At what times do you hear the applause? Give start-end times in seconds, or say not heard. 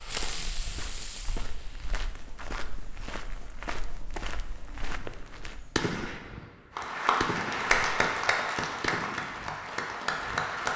6.8-10.7.